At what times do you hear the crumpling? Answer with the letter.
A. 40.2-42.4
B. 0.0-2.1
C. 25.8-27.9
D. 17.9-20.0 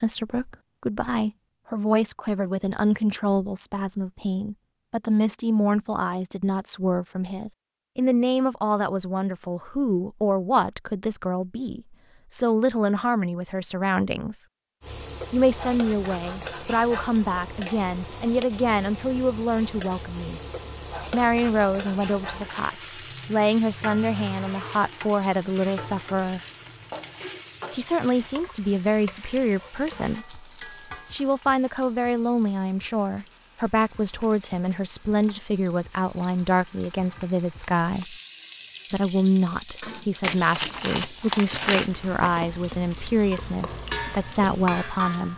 A.